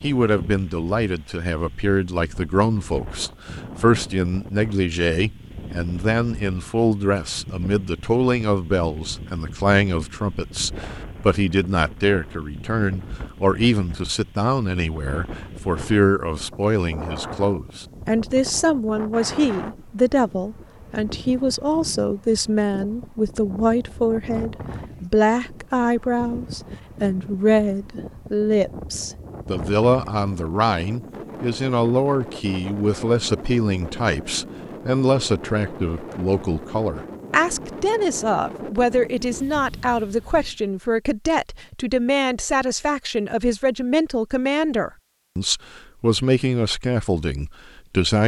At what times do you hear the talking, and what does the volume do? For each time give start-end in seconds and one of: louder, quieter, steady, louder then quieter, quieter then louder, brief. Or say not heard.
0.0-48.2 steady.